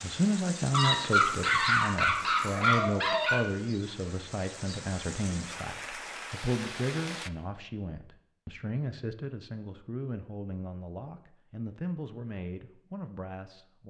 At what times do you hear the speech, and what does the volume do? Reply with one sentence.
You can hear the speech from 0.0 to 13.8 s, getting quieter.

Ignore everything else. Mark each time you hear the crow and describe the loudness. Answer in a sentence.
The crow can't be heard in this clip.